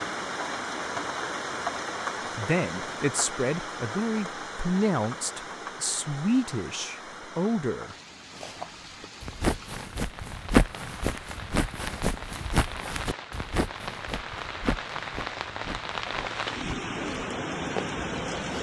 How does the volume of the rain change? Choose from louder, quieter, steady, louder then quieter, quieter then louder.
quieter then louder.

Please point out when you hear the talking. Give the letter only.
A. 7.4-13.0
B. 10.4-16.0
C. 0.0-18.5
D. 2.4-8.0
D.